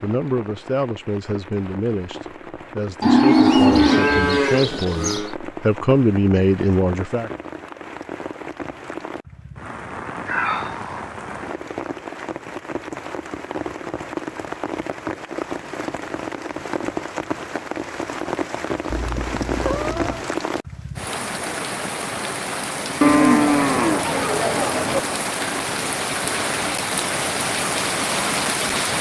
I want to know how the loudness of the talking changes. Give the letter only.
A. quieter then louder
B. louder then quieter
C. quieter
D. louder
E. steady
D.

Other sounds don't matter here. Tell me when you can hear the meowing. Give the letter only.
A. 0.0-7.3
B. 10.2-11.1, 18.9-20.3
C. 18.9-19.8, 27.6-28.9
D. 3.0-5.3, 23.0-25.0
B.